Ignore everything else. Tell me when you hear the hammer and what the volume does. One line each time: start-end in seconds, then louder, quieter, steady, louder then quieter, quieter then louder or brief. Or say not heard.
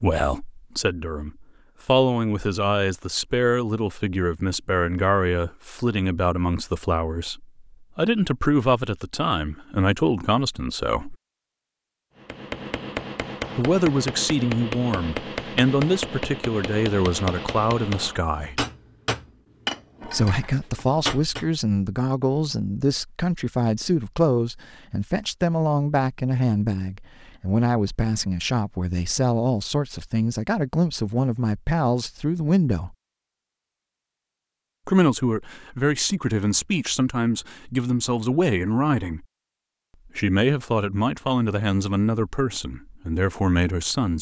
12.2-21.4 steady.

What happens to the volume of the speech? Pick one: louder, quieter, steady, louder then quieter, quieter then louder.
steady.